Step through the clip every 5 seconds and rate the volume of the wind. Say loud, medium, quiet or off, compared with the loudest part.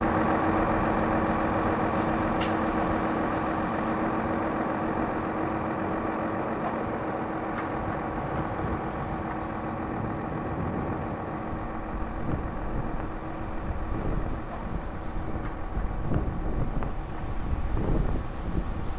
medium, loud, loud, loud.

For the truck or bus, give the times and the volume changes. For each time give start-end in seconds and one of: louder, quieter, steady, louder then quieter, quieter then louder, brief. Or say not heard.
0.0-18.9 quieter.